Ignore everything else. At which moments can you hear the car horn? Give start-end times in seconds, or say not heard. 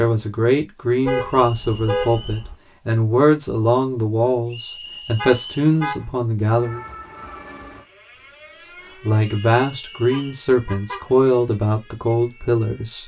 1.1-2.5, 5.2-6.0, 10.1-11.1.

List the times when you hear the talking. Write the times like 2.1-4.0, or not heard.
0.0-6.8, 9.0-13.0.